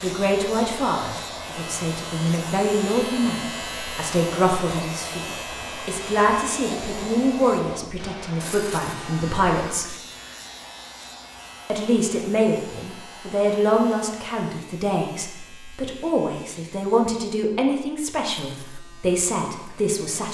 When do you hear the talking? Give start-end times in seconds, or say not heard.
0.0-9.9, 11.7-20.2.